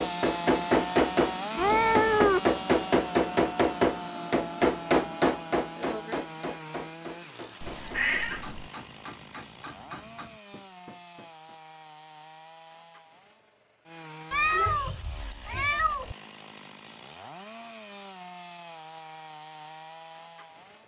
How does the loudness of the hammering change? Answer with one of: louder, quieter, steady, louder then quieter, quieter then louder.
quieter.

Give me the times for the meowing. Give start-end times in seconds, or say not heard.
1.6-2.5, 7.6-8.7, 14.3-16.1.